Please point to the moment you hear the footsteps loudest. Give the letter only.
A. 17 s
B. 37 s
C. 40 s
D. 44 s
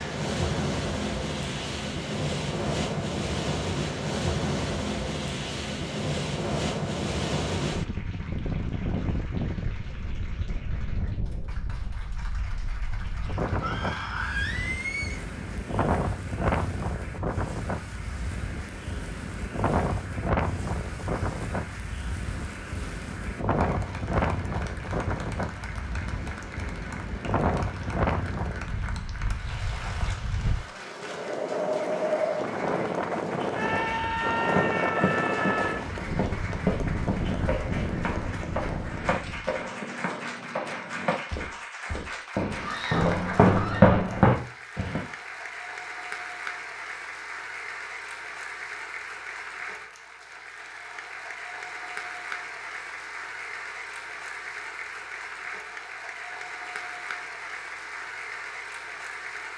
D.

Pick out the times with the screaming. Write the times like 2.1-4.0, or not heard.
13.6-15.2, 33.5-35.8, 42.6-44.0.